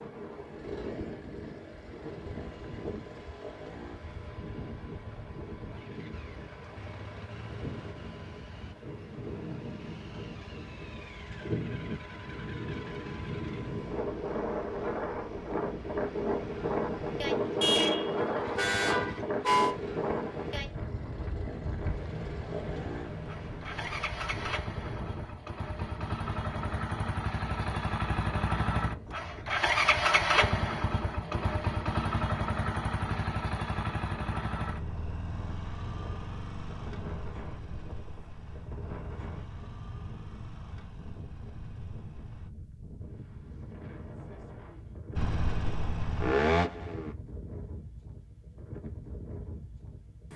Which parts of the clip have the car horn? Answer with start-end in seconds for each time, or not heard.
17.6-19.8.